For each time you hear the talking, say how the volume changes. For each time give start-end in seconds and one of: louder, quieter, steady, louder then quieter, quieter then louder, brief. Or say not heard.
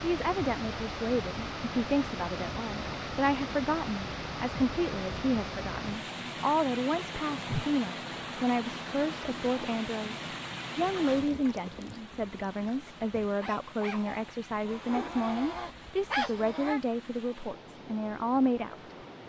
0.0-18.9 steady.